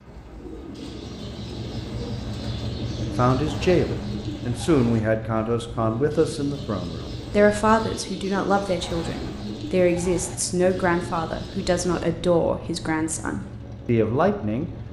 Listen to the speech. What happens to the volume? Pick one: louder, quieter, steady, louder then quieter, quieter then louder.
steady.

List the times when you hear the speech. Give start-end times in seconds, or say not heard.
3.1-14.7.